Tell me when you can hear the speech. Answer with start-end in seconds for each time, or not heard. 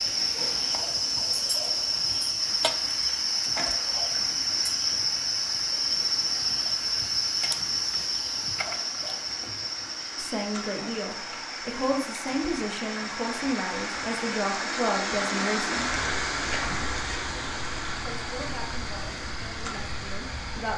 10.2-16.0, 17.9-20.7.